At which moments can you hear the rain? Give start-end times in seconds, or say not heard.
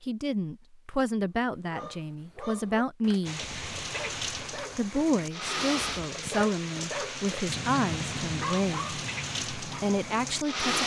3.2-10.8.